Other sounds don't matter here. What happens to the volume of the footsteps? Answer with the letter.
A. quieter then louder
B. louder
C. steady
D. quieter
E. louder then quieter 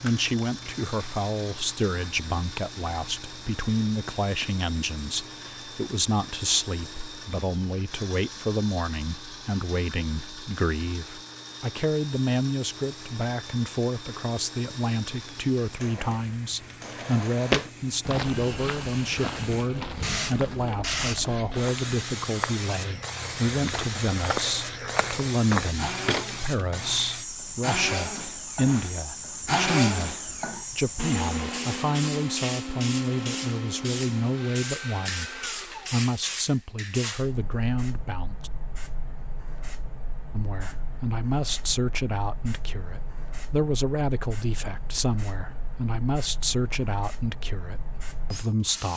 A.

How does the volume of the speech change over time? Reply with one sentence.
The loudness of the speech stays about the same.